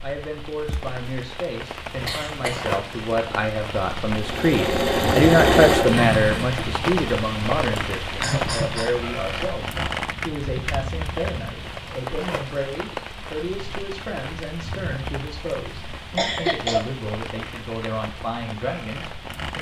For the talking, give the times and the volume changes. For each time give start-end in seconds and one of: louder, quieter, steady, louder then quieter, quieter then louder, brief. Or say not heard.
0.0-19.5 louder then quieter.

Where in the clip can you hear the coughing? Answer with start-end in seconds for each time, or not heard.
2.0-2.6, 7.8-8.9, 16.1-16.9.